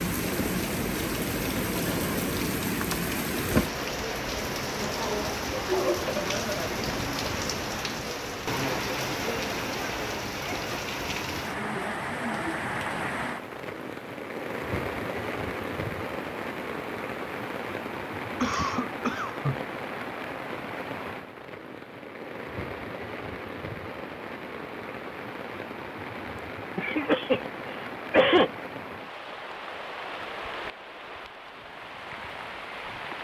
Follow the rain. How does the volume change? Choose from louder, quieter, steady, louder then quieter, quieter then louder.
quieter.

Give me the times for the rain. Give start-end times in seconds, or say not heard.
0.0-33.1.